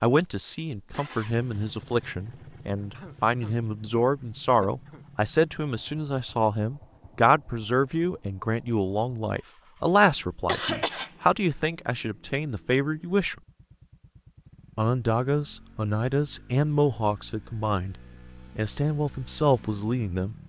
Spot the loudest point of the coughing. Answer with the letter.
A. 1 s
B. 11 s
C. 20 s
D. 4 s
B.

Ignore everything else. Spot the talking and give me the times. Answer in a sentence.
You can hear the talking from 0.0 to 13.3 s, from 14.8 to 17.9 s and from 18.6 to 20.4 s.